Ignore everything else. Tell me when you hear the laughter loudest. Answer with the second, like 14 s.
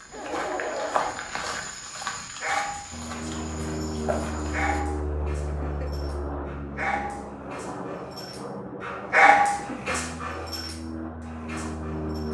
1 s.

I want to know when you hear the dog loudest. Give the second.
9 s.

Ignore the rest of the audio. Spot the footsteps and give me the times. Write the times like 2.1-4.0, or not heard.
0.0-4.8.